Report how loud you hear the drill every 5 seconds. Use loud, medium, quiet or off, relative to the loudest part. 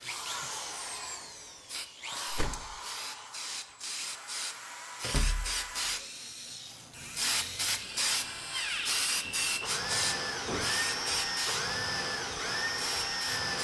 medium, medium, loud.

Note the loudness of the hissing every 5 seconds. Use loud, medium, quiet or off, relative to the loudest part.
medium, loud, loud.